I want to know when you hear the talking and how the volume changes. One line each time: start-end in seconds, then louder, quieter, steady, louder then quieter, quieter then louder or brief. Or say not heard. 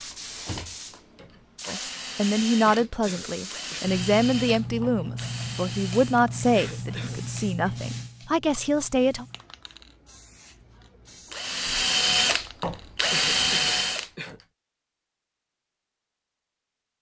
1.6-9.2 steady.